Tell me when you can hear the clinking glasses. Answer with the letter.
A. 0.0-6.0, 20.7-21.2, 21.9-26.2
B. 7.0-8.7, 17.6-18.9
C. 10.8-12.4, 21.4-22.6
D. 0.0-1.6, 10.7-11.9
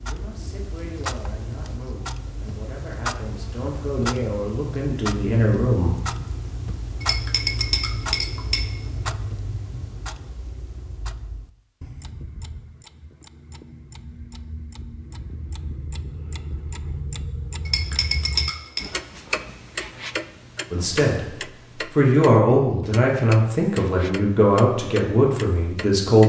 B.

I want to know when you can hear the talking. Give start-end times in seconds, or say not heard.
0.0-6.0, 20.7-21.2, 21.9-26.2.